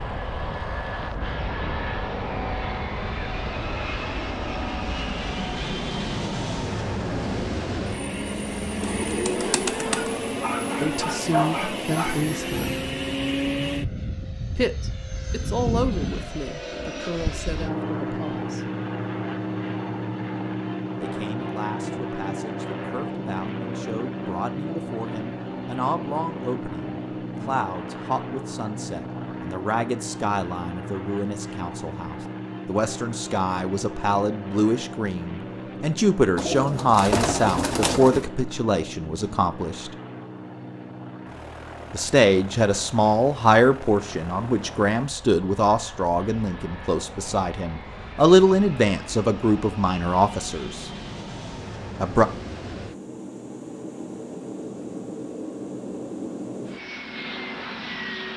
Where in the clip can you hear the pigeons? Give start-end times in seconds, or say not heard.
8.8-10.2, 36.4-38.2.